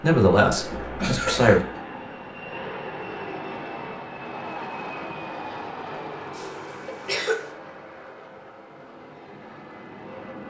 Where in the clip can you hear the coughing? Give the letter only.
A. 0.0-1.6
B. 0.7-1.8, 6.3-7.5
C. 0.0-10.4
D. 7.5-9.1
B.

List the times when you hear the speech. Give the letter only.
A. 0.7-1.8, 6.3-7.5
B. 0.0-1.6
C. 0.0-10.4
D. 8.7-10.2
B.